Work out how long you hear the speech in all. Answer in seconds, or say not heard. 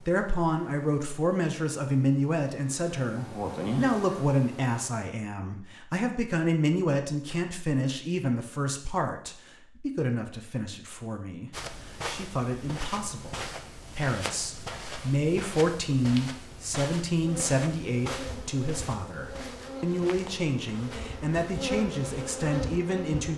23 s.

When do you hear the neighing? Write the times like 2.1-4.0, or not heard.
not heard.